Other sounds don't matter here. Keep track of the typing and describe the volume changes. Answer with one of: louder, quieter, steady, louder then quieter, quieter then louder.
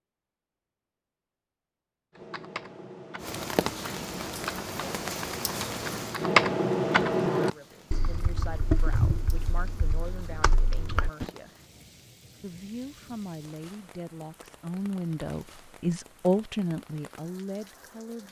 louder then quieter.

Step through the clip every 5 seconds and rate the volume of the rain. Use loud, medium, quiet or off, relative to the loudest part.
loud, medium, quiet, quiet.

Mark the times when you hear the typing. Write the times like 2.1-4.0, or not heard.
2.1-11.2.